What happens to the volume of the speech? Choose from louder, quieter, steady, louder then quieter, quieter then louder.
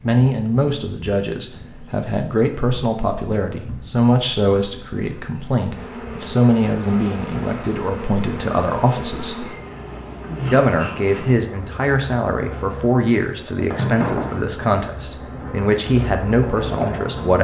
steady.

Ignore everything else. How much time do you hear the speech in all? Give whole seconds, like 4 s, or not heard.
16 s.